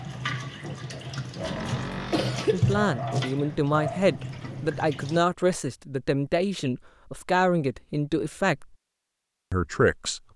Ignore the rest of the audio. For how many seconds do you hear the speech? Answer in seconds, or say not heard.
7 s.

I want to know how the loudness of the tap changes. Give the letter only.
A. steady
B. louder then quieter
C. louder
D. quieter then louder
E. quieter
B.